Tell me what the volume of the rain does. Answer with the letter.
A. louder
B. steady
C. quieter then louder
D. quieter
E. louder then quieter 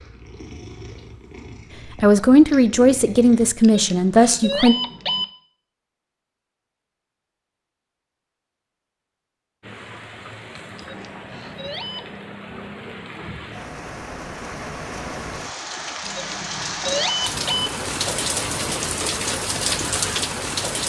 A.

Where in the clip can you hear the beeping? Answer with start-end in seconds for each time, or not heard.
3.6-5.2, 10.8-12.2, 16.0-17.7.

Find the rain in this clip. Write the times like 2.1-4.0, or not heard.
9.6-20.8.